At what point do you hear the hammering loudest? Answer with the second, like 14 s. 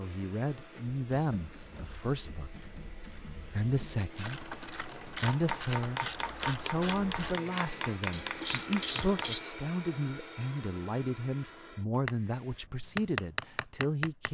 13 s.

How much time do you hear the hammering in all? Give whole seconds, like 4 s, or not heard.
6 s.